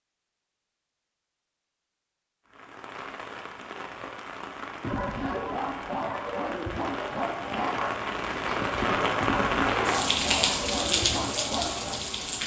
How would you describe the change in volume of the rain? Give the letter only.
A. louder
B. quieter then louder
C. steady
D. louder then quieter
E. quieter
A.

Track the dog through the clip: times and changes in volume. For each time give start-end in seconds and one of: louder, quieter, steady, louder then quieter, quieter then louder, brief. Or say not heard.
4.8-12.0 steady.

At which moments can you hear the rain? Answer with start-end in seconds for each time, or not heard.
2.5-12.4.